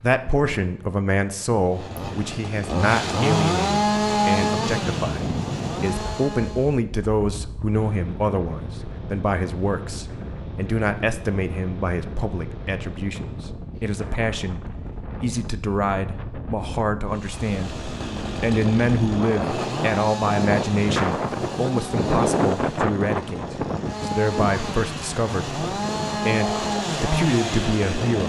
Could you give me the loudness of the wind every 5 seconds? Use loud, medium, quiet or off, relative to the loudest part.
medium, medium, medium, medium, loud, medium.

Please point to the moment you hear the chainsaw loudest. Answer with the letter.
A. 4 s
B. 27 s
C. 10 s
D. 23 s
A.